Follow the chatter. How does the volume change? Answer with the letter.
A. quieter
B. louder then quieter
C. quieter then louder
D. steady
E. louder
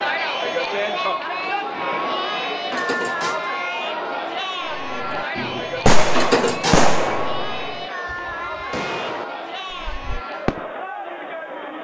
A.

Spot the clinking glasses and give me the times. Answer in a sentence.
The clinking glasses can't be heard in this clip.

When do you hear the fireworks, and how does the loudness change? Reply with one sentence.
You can hear the fireworks from 4.7 to 10.7 s, getting quieter.